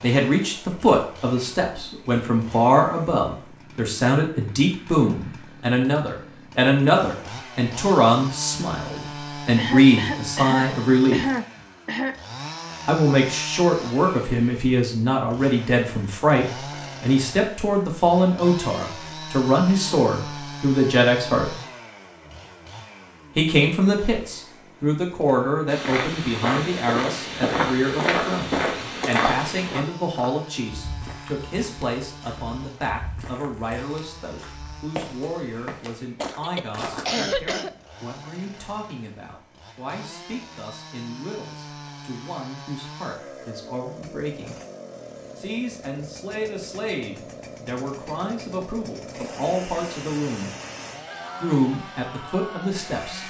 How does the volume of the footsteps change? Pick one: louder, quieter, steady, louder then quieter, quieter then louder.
quieter then louder.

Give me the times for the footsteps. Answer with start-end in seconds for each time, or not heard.
25.6-37.1.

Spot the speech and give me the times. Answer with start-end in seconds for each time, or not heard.
0.0-11.2, 12.8-21.6, 23.4-44.6, 45.4-50.5, 51.4-53.2.